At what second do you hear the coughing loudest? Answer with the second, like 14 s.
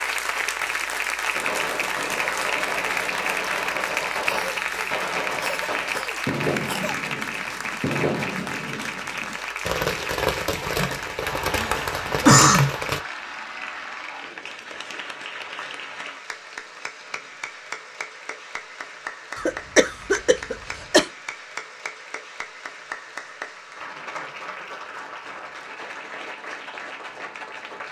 12 s.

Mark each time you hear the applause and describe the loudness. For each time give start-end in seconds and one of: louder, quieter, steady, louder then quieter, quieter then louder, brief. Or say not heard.
0.0-27.8 quieter.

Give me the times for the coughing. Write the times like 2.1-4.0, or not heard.
4.2-7.0, 10.8-12.8, 19.4-21.1.